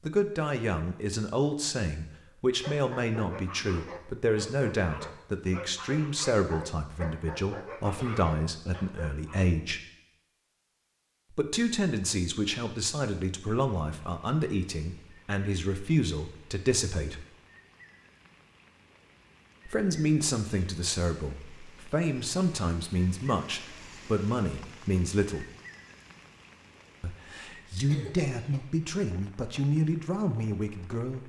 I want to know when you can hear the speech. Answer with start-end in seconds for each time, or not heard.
0.1-9.8, 11.3-17.2, 19.6-25.4, 27.0-31.2.